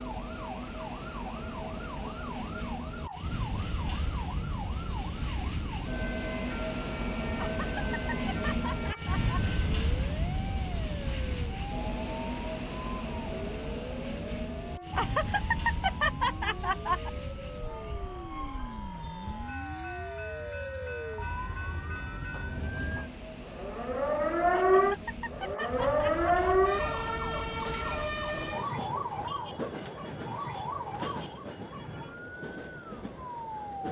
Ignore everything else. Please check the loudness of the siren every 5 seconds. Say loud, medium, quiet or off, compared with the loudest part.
quiet, quiet, quiet, quiet, loud, loud, medium.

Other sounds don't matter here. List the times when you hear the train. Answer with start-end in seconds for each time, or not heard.
0.0-33.8.